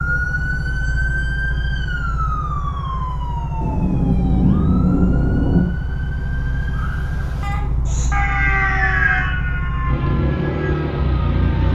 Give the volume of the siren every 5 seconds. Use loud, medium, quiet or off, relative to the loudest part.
loud, loud, medium.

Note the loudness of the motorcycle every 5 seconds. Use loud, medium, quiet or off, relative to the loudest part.
medium, medium, loud.